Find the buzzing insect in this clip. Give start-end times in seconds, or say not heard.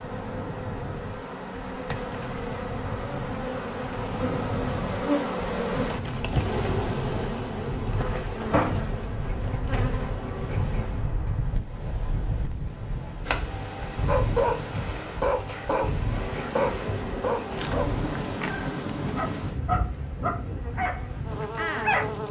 0.0-11.2, 16.0-22.2.